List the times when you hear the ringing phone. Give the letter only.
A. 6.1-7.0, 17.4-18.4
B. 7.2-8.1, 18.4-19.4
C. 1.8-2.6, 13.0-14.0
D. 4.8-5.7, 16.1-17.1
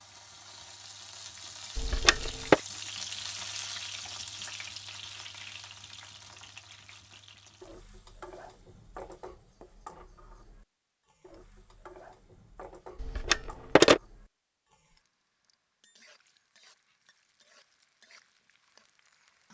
C.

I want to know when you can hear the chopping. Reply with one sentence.
The chopping can't be heard in this clip.